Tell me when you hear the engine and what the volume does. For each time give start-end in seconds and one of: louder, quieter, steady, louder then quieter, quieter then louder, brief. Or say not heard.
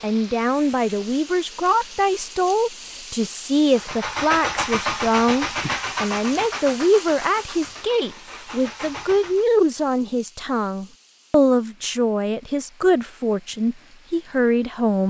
3.8-9.4 quieter.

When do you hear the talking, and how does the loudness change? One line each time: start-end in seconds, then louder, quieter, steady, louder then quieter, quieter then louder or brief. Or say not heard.
0.0-15.0 steady.